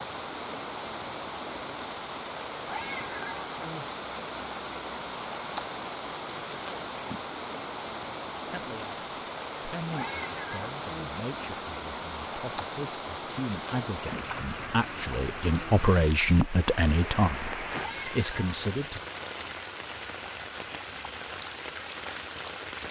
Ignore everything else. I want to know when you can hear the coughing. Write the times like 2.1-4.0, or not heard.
not heard.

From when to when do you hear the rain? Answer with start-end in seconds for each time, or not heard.
0.0-22.8.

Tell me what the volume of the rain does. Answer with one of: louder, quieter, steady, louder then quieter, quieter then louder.
steady.